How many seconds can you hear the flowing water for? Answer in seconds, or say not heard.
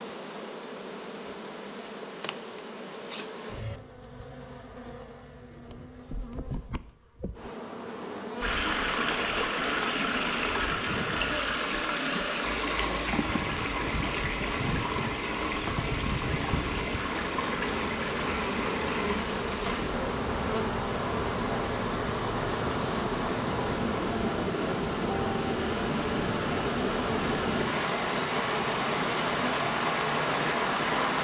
23 s.